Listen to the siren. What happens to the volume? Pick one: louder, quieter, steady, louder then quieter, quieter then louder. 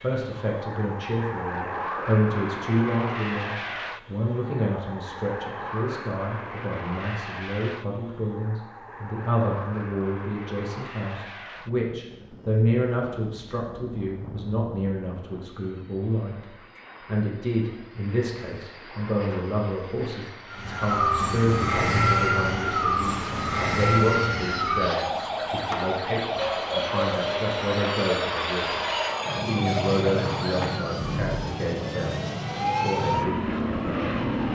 quieter.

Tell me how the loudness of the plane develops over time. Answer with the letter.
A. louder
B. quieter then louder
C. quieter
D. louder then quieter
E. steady
B.